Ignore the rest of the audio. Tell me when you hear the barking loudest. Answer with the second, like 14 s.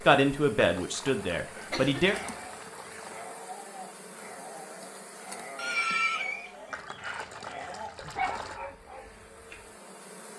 8 s.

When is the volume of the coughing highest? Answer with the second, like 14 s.
6 s.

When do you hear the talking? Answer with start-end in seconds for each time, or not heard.
0.0-2.1.